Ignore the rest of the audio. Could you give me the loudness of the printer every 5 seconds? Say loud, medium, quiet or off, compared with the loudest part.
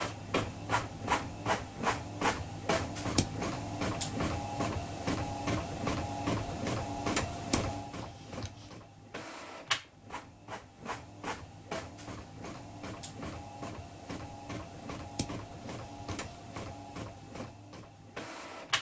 loud, loud, medium, medium.